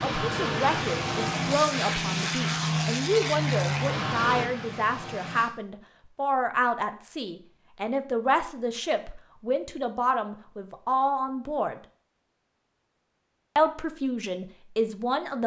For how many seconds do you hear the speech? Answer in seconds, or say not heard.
14 s.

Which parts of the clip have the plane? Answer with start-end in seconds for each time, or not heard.
0.0-5.5.